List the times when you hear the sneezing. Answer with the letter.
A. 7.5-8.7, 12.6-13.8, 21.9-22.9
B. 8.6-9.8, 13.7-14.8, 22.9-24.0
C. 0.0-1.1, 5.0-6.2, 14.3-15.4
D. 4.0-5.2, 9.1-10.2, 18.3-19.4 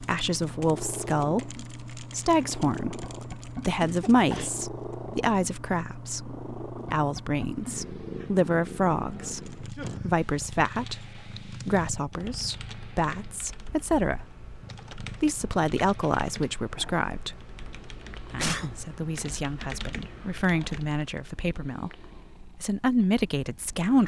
D.